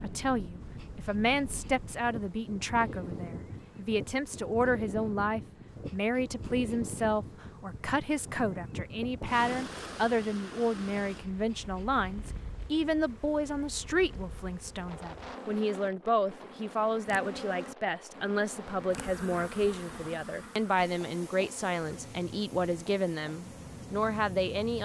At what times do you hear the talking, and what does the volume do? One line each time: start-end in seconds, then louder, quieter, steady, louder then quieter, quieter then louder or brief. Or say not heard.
0.0-24.8 steady.